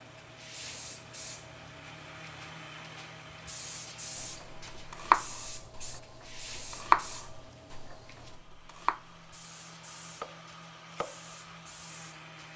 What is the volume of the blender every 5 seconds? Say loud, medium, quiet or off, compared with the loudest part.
loud, medium, loud.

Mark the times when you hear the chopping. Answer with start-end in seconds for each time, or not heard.
4.2-9.2, 10.2-11.2.